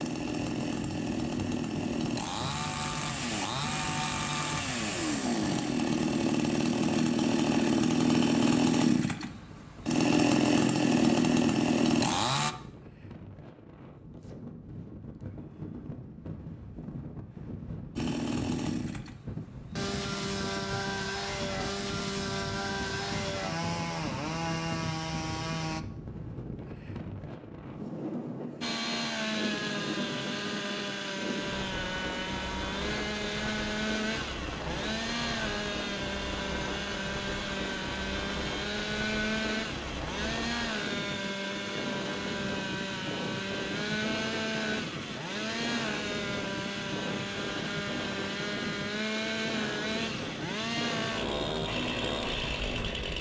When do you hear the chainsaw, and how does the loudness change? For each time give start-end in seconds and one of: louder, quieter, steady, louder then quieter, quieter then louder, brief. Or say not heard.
0.0-12.6 louder
17.9-25.9 steady
28.6-53.1 steady.